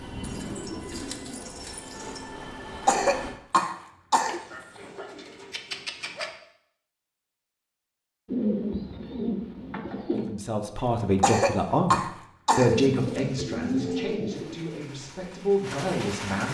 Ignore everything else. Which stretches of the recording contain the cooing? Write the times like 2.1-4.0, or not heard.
0.2-2.2, 4.2-6.3, 8.2-10.4, 12.6-14.6.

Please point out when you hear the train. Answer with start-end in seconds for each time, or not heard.
0.0-3.4, 14.2-16.4.